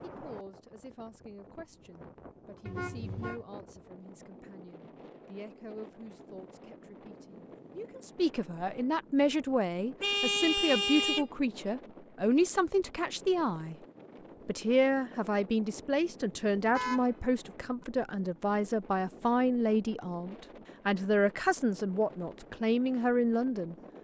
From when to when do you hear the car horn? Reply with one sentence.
You can hear the car horn from 2.6 to 3.5 s, from 10.0 to 11.2 s and from 16.6 to 17.9 s.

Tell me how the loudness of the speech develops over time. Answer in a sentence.
The volume of the speech goes up.